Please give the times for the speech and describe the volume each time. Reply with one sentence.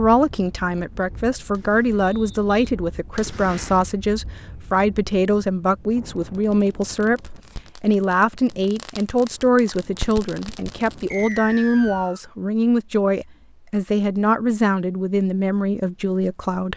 You can hear the speech from 0.0 to 16.7 s, at a steady volume.